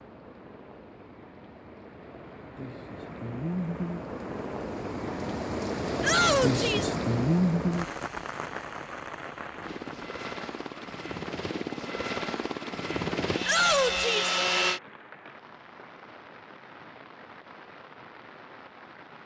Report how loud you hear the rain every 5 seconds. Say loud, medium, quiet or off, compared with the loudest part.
medium, loud, quiet, quiet.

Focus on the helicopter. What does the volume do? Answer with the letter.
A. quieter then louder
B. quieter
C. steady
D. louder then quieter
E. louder
E.